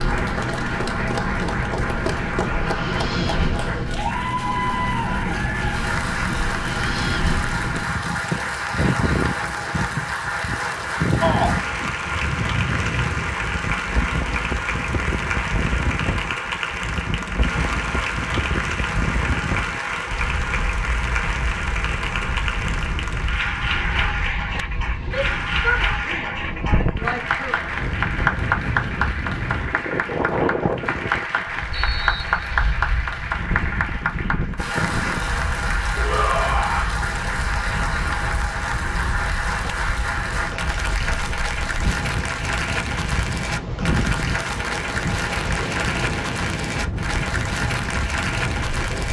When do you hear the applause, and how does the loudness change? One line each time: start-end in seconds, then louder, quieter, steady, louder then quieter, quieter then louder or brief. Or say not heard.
0.0-49.0 steady.